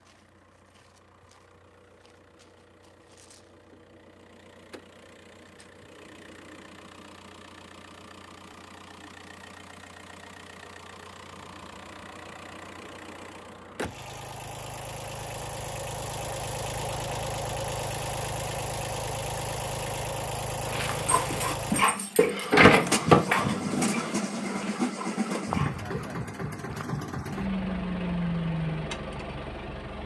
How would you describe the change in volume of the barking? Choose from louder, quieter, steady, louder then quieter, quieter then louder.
louder then quieter.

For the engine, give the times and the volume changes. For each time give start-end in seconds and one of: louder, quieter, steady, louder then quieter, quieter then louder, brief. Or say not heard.
0.0-30.0 louder.